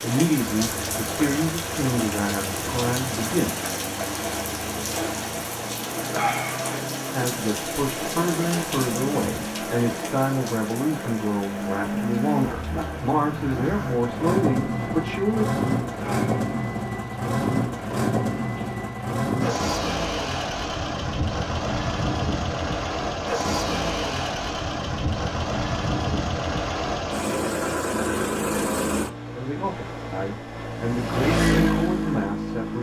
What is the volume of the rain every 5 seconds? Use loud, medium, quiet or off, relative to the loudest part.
loud, loud, medium, medium, off, off, off.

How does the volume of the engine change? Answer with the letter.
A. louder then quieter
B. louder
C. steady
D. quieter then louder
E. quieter
B.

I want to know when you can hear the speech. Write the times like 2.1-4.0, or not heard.
0.0-3.5, 7.2-15.4, 29.4-32.7.